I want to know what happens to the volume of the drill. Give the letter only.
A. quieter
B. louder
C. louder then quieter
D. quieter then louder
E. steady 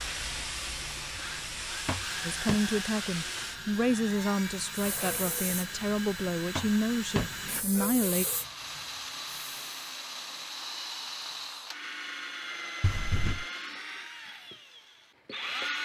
E.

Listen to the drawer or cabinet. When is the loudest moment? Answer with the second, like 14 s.
7 s.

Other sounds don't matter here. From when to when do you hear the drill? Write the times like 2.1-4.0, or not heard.
0.0-15.8.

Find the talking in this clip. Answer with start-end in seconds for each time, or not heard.
2.2-8.2.